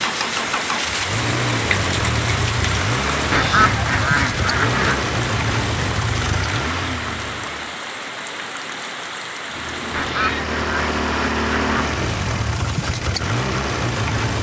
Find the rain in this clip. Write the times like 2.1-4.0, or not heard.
0.0-10.1.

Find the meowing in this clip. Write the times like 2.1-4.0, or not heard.
9.6-10.5.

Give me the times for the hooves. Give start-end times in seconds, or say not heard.
not heard.